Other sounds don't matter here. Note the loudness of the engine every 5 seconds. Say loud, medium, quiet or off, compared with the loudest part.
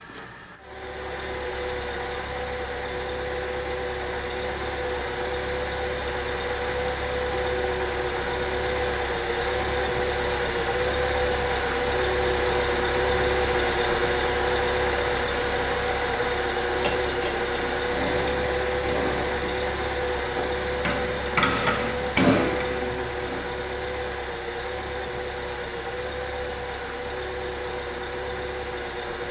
medium, loud, loud, loud, medium, medium.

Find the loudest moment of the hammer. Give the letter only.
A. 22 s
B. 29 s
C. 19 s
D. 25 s
A.